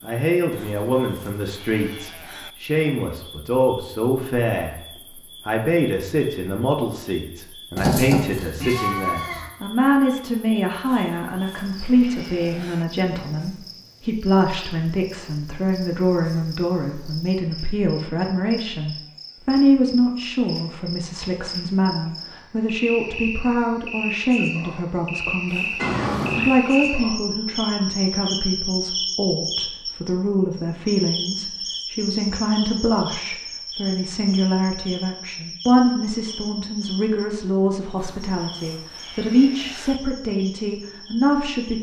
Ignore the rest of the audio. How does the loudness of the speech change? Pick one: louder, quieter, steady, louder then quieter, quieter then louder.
steady.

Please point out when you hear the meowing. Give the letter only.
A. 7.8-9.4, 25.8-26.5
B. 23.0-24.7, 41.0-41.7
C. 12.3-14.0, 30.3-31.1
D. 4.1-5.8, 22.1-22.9
A.